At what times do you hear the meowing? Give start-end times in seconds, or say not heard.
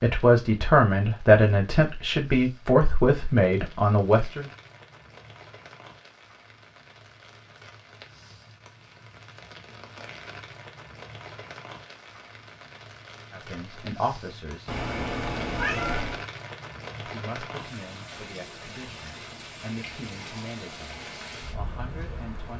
14.7-16.2.